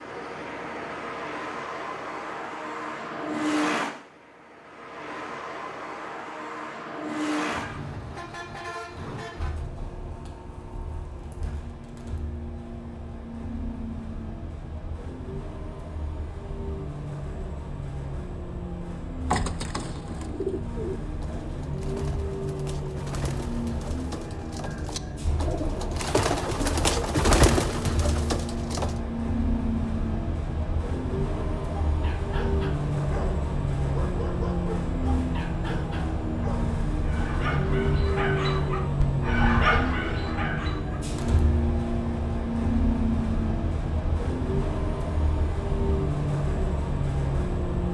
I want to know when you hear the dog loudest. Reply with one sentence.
The volume of the dog peaks at 40 seconds.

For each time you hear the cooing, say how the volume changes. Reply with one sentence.
The cooing can be heard from 19.3 to 28.9 s, getting quieter then louder.